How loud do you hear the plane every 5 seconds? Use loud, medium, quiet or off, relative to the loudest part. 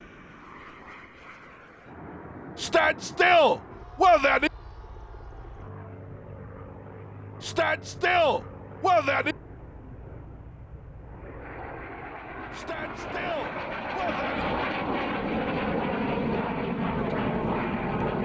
quiet, quiet, medium, loud.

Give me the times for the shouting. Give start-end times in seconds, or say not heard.
2.5-4.5, 7.4-9.3, 12.5-14.4.